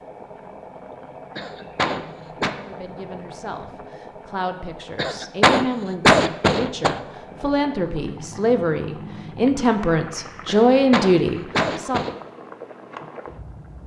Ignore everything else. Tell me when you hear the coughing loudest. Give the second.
6 s.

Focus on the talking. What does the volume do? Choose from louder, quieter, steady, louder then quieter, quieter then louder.
louder.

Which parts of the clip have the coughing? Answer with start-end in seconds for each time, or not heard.
1.4-2.5, 5.0-7.0, 10.4-12.2.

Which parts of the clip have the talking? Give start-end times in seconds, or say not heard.
2.6-12.0.